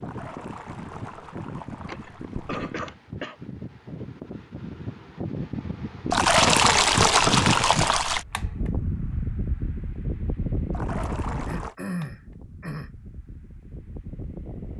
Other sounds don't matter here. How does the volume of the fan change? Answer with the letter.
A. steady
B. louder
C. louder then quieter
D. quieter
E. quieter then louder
C.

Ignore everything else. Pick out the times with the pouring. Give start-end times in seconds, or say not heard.
0.0-2.7, 6.1-8.2, 10.7-11.8.